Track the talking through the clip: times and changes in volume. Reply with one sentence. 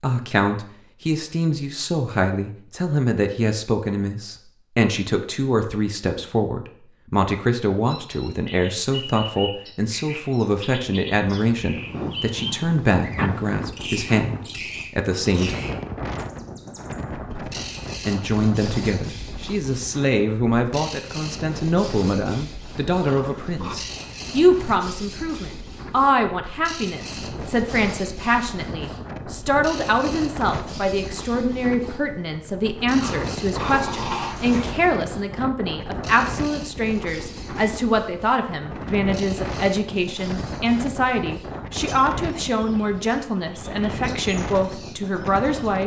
You can hear the talking from 0.0 to 15.6 s, at a steady volume; and from 18.1 to 45.8 s, at a steady volume.